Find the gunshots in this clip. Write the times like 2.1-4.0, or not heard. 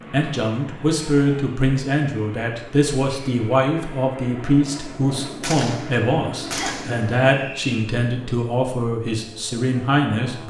5.4-7.2.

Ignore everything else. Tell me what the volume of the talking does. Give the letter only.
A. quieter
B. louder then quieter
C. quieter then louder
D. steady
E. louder
D.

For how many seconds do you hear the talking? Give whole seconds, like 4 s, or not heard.
10 s.